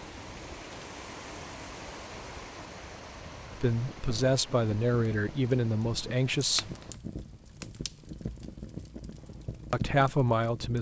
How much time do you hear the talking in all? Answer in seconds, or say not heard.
4 s.